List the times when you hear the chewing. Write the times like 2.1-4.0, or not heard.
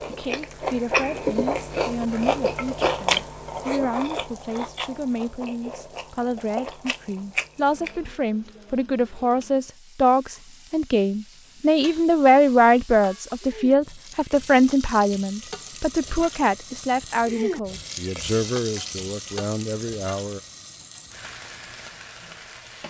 0.0-8.1.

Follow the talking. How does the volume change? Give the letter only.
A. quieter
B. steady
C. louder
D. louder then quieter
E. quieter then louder
D.